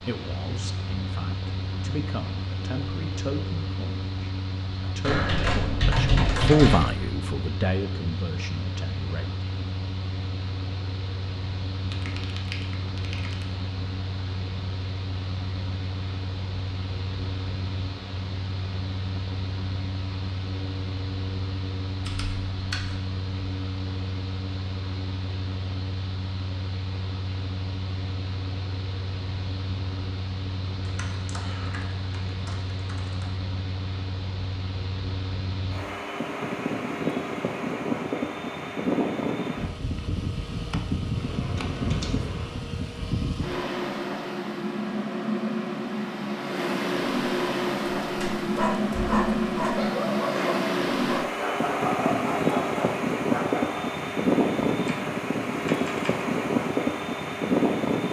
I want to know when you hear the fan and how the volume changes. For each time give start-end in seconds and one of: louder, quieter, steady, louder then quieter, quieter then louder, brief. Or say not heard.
0.0-58.0 louder.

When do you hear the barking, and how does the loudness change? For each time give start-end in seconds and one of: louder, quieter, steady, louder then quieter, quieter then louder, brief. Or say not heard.
47.5-53.8 steady.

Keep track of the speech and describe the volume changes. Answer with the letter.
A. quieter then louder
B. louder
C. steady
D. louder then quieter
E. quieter
D.